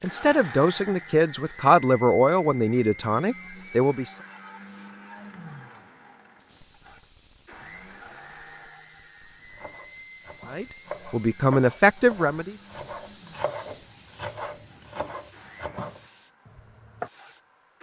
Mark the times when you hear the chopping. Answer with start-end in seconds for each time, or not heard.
9.4-17.1.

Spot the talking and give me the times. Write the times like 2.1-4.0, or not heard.
0.0-4.2, 10.4-12.6.